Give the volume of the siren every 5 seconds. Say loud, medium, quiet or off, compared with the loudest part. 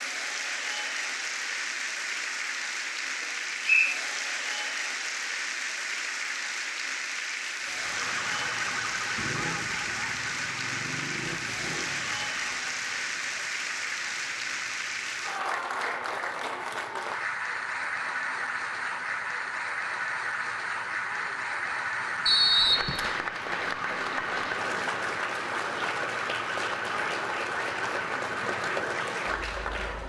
off, loud, medium, medium, loud, loud.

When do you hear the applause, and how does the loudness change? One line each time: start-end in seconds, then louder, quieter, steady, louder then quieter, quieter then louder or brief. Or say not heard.
0.0-30.0 steady.